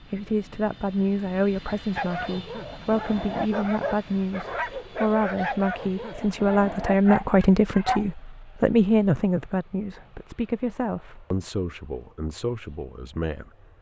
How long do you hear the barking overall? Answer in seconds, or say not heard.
6 s.